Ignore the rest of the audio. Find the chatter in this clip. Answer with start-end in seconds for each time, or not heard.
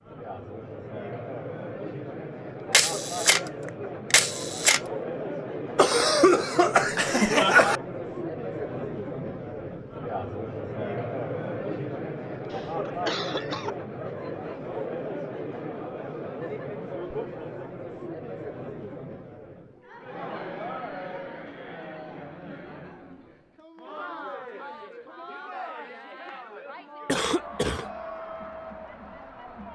0.0-29.7.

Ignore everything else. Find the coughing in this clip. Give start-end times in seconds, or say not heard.
5.8-7.8, 12.5-13.7, 27.1-27.9.